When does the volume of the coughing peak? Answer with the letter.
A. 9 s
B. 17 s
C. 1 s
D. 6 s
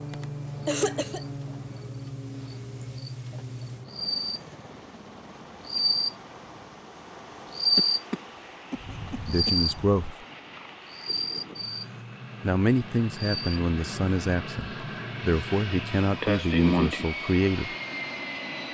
B.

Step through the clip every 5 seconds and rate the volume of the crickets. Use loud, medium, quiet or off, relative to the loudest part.
medium, loud, medium, off.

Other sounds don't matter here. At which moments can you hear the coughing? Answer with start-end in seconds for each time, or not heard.
0.1-1.2, 7.8-9.5, 16.2-17.1.